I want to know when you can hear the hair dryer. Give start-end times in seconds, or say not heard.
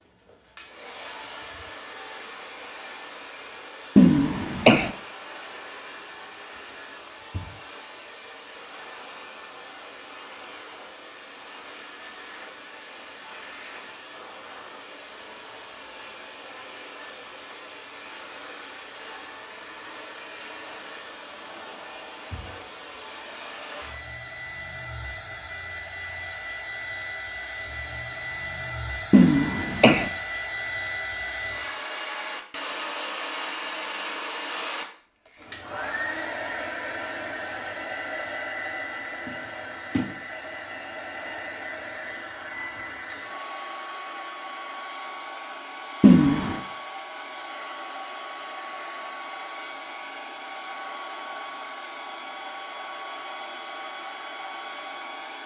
0.0-55.4.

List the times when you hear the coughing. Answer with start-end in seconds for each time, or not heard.
4.0-4.9, 29.1-30.1, 46.0-46.6.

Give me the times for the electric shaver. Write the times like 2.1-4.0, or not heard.
not heard.